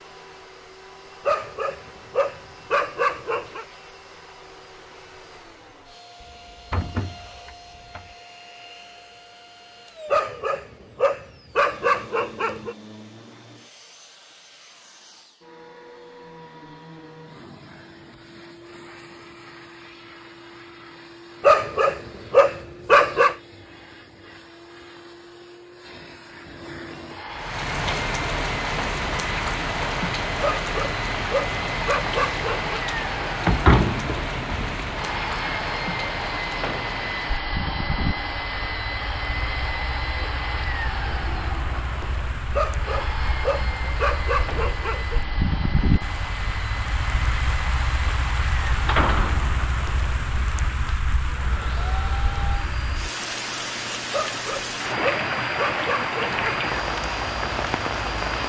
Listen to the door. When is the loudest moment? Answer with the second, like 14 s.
34 s.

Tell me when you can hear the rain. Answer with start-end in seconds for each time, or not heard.
27.2-58.4.